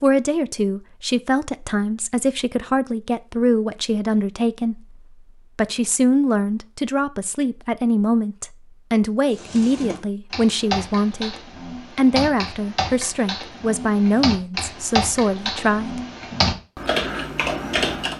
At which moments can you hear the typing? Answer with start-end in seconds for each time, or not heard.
9.3-18.1.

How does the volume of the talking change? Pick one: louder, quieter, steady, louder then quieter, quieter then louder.
steady.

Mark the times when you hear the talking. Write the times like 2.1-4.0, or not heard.
0.0-11.3, 11.9-16.0.